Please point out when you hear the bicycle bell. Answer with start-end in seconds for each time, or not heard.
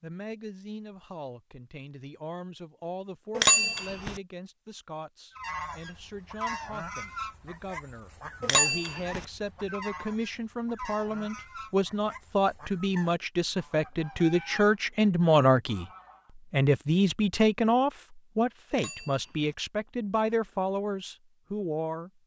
3.4-4.2, 8.4-9.2, 18.7-19.6.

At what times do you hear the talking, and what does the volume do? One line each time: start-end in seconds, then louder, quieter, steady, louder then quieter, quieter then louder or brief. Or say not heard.
0.0-15.8 louder
16.5-22.1 quieter.